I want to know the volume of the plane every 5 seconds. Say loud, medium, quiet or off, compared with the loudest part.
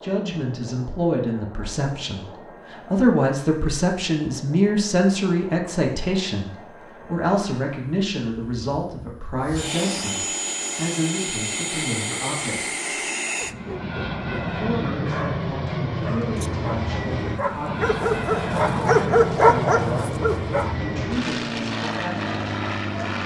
quiet, medium, loud, loud, loud.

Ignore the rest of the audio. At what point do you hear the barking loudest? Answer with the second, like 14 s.
19 s.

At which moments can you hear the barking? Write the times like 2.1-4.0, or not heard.
13.7-20.8.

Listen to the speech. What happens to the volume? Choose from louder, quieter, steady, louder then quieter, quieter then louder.
quieter.